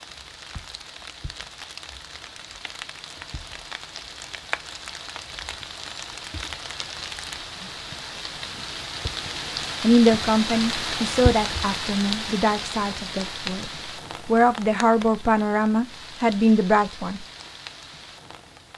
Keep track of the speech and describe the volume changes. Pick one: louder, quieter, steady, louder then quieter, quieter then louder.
quieter then louder.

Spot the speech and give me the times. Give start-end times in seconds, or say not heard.
9.8-17.2.